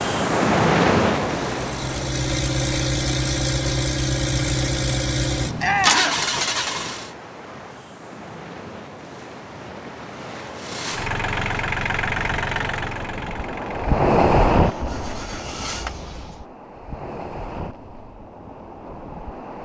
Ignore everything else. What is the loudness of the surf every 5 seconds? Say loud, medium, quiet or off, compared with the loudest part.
loud, quiet, loud, quiet.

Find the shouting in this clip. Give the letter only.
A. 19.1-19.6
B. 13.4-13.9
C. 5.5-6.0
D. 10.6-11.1
C.